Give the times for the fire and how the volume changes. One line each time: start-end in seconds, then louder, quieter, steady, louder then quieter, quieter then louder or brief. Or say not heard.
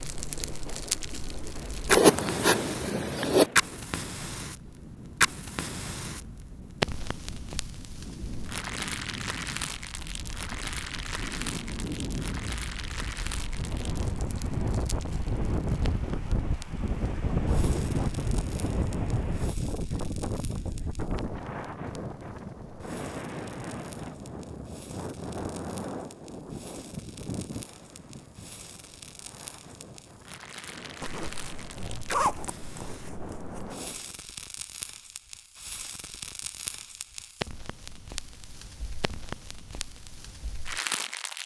0.0-41.4 quieter then louder.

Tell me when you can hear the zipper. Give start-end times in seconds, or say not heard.
1.9-3.5, 31.0-33.8.